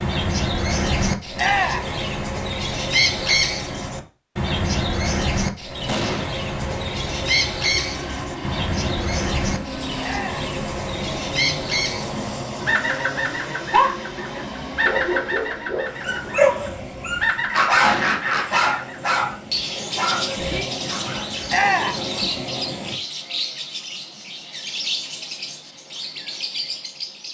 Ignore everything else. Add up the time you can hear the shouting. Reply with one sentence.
The shouting can be heard for 2 seconds in total.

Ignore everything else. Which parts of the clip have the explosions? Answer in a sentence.
The explosions can be heard from 5.8 to 6.2 s and from 17.8 to 18.2 s.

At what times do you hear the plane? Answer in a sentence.
You can hear the plane from 6.0 to 23.0 s.